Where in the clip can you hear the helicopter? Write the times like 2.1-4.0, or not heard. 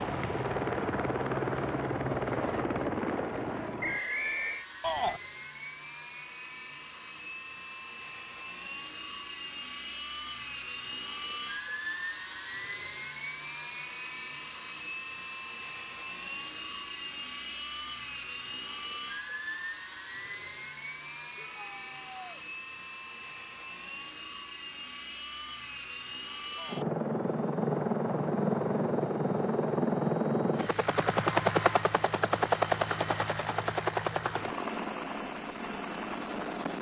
0.0-36.7.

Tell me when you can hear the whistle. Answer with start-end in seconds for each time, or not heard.
3.8-4.7.